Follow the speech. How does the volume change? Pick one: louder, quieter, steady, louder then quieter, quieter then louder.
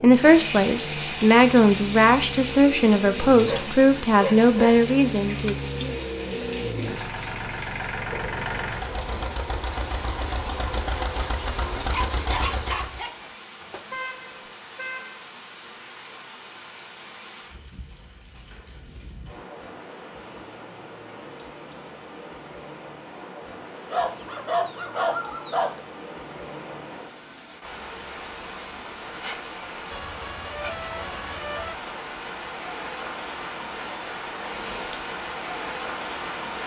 steady.